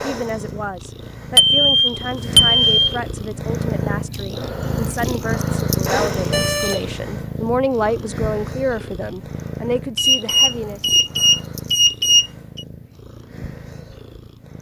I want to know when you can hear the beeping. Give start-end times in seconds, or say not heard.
1.4-3.0, 6.0-6.9, 9.9-12.7.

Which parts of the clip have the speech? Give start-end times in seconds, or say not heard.
0.0-10.8.